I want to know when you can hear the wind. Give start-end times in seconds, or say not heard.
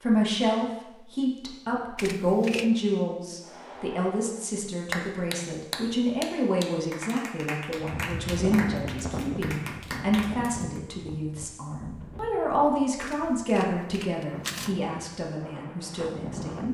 7.8-16.6.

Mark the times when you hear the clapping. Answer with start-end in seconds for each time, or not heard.
3.4-10.8.